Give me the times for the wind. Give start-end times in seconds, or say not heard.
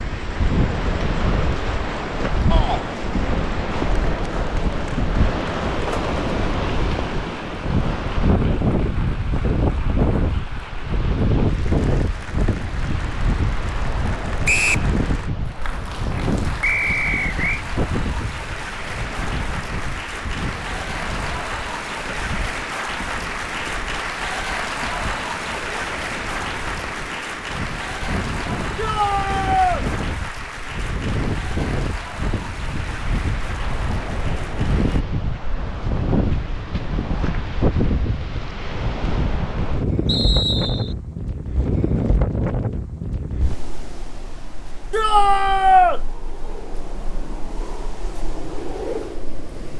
0.0-49.7.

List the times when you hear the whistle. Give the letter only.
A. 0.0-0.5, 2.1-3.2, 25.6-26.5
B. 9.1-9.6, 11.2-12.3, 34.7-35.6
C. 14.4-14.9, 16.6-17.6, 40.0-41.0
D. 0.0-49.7
C.